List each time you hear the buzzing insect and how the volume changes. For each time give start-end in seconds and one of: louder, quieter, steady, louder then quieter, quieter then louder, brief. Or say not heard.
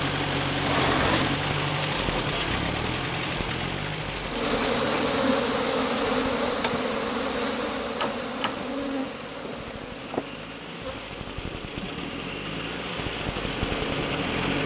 4.2-14.6 quieter.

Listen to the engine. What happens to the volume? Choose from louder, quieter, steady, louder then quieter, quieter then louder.
quieter then louder.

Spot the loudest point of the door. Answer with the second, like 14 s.
1 s.